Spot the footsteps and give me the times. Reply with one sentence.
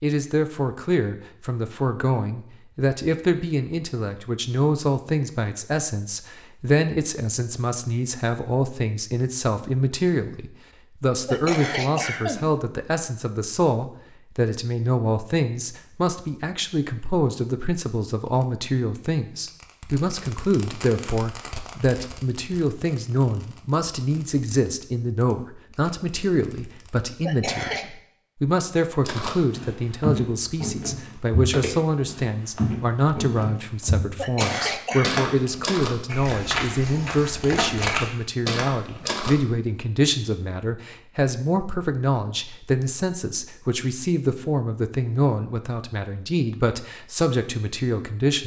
The footsteps can be heard from 29.0 to 39.4 s.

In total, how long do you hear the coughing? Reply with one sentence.
You can hear the coughing for 3 seconds altogether.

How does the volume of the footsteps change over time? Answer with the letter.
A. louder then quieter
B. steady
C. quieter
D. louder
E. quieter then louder
B.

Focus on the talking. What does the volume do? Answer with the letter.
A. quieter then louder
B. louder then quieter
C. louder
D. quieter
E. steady
E.